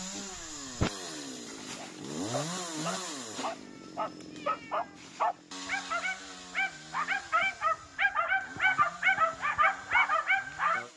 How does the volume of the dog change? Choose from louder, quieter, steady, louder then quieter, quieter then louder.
louder.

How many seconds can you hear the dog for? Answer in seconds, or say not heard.
9 s.